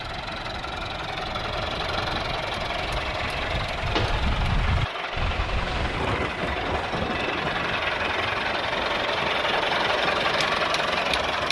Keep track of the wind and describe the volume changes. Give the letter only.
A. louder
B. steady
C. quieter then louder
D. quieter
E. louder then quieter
E.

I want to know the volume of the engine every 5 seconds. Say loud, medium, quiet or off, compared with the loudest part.
medium, loud, loud.